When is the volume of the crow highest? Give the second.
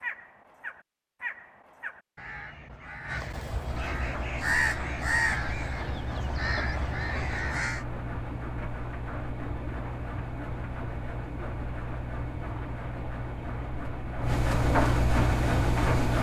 5 s.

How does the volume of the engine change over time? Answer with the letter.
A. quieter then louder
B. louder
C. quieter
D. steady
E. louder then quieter
B.